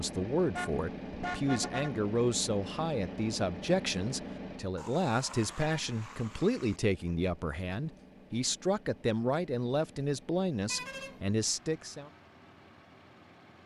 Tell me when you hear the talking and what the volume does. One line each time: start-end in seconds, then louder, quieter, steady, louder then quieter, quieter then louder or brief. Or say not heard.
0.0-12.1 steady.